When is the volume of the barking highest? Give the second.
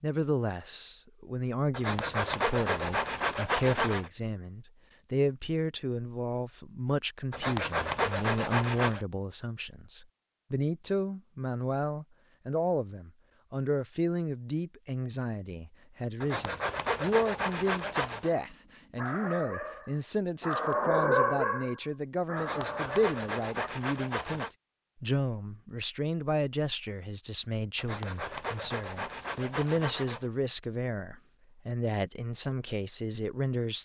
21 s.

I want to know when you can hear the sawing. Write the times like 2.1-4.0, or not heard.
1.7-4.1, 7.3-9.0, 16.2-18.3, 22.4-24.5, 27.8-30.2.